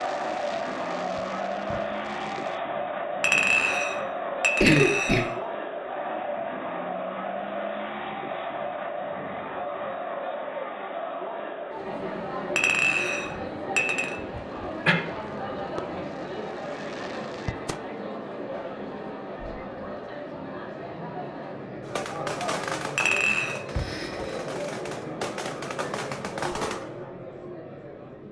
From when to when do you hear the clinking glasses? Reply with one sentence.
You can hear the clinking glasses from 3.2 to 5.3 s, from 12.6 to 14.2 s and from 22.9 to 23.6 s.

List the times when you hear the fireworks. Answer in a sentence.
You can hear the fireworks from 0.0 to 2.6 s, from 14.5 to 17.8 s and from 21.9 to 26.9 s.